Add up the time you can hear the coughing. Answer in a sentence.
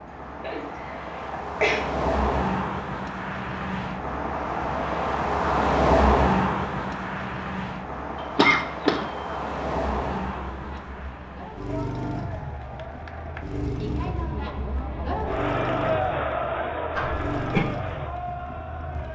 The coughing can be heard for 3 seconds in total.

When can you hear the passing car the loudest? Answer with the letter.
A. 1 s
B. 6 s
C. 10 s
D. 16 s
B.